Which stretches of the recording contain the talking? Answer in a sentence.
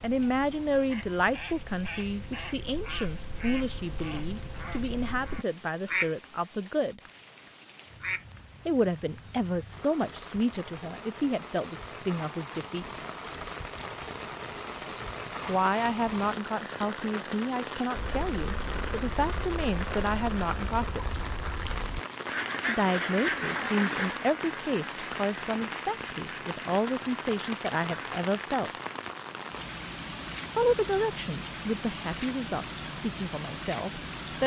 The talking can be heard from 0.0 to 7.0 s, from 8.7 to 13.0 s, from 15.4 to 21.1 s, from 22.6 to 28.7 s and from 30.6 to 34.4 s.